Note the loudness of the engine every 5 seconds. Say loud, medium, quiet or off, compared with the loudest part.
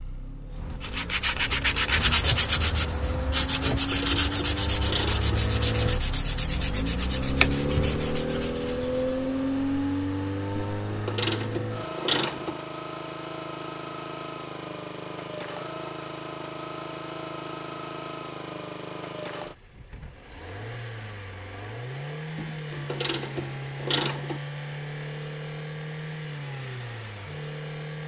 medium, loud, medium, medium, medium, medium.